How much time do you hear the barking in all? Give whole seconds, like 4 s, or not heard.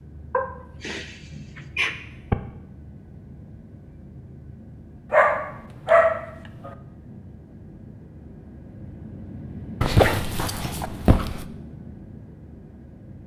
5 s.